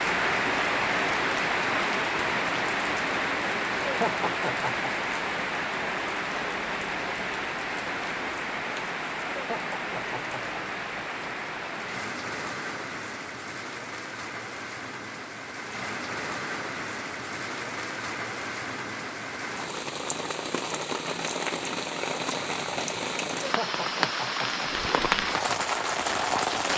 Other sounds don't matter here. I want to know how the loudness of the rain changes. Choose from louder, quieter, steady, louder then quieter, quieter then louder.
quieter then louder.